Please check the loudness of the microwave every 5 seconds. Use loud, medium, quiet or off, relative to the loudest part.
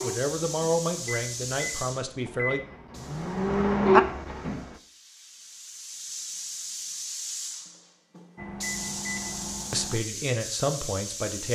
loud, medium, off.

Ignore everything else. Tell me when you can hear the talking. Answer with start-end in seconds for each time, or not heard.
0.0-2.6, 9.7-11.5.